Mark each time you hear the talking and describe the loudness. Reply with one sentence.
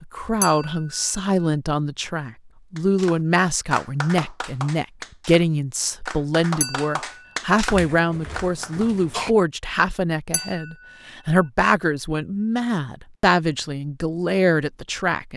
The talking can be heard from 0.0 to 15.3 s, at a steady volume.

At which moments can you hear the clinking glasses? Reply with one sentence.
You can hear the clinking glasses from 0.4 to 0.9 s, from 6.6 to 7.0 s and from 10.3 to 10.9 s.